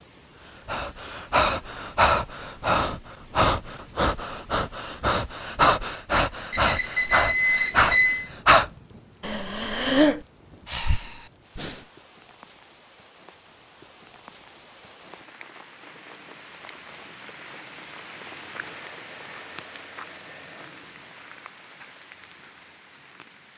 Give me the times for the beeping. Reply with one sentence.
The beeping can be heard from 6.5 to 8.3 s and from 18.7 to 20.7 s.